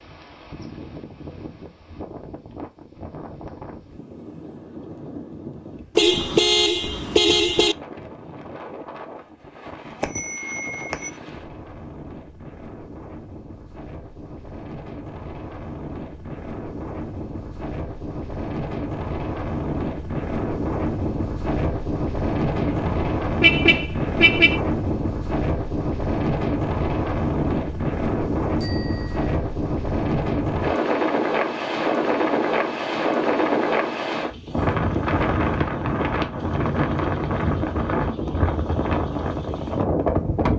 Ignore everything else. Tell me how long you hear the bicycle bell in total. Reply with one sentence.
The bicycle bell can be heard for 2 seconds in total.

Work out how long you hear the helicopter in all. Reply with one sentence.
The helicopter can't be heard in this clip.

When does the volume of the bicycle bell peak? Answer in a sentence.
The loudest moment of the bicycle bell is at 10 seconds.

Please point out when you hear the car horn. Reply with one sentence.
The car horn can be heard from 6.0 to 7.8 s and from 22.6 to 24.6 s.